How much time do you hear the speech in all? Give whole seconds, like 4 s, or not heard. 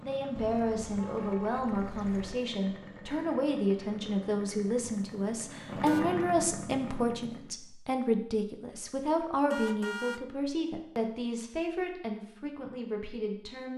14 s.